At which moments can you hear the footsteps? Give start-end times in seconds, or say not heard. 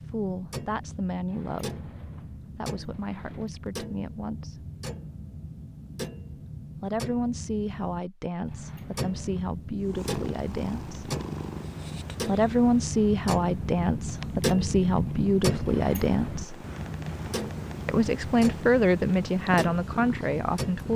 not heard.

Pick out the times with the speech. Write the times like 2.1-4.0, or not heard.
0.1-1.9, 2.5-4.7, 6.8-11.1, 12.2-16.6, 17.9-20.9.